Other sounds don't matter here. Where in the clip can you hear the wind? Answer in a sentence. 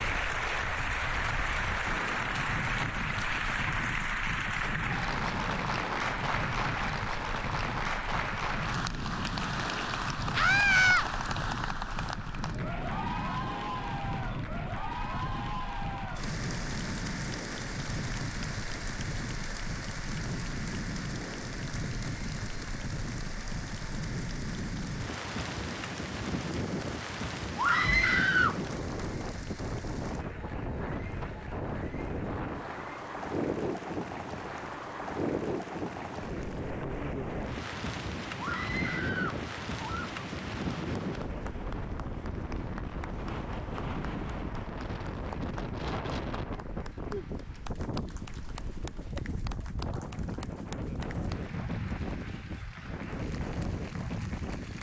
The wind can be heard from 0.0 to 54.7 s.